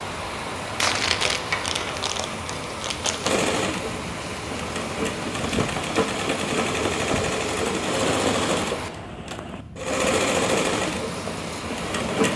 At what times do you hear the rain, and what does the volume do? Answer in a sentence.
The rain can be heard from 0.0 to 12.3 s, at a steady volume.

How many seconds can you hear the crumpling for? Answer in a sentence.
You can hear the crumpling for 3 seconds altogether.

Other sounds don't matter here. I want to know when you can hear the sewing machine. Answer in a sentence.
The sewing machine can be heard from 3.2 to 12.3 s.